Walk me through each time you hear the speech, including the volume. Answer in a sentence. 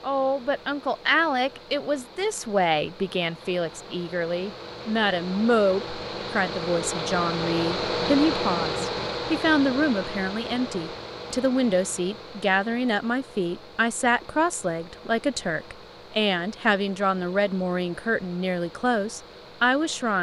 You can hear the speech from 0.0 to 20.1 s, at a steady volume.